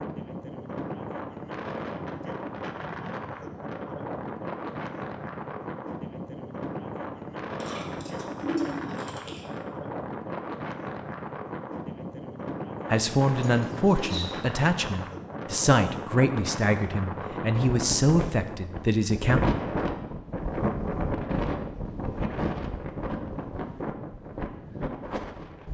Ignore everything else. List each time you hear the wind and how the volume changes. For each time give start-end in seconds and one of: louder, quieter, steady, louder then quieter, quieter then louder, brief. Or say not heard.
0.0-25.7 steady.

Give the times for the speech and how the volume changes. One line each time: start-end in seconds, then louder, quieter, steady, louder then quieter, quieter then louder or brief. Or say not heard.
12.9-19.4 steady.